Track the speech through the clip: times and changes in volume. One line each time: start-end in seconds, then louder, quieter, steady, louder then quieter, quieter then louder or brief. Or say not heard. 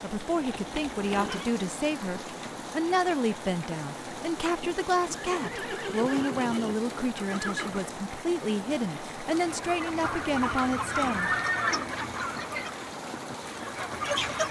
0.0-11.3 steady.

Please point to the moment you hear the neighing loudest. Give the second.
11 s.